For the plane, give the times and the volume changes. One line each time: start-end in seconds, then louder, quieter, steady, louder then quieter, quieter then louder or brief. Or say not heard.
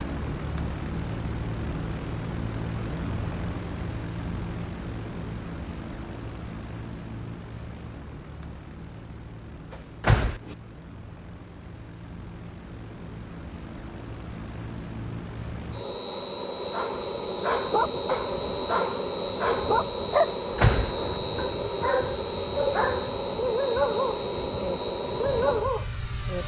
0.0-26.4 quieter then louder.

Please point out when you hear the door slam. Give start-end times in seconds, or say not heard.
9.7-10.6, 20.2-21.1.